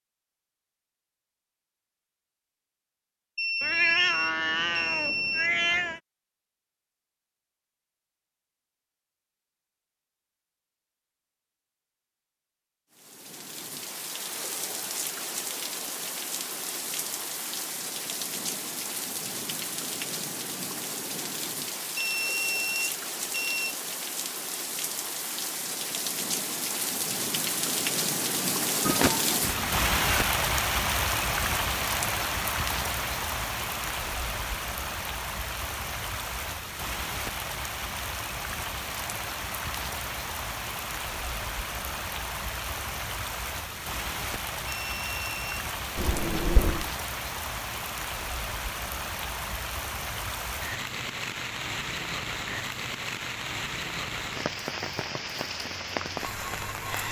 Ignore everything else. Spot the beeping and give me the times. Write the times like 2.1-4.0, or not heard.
3.4-5.5, 21.9-23.8, 44.6-45.6.